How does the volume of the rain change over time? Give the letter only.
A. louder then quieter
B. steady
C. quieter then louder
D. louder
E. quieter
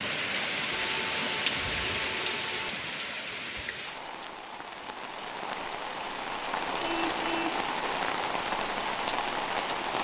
C.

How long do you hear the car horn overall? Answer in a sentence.
You can hear the car horn for 3 seconds altogether.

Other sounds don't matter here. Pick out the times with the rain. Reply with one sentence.
You can hear the rain from 0.0 to 10.0 s.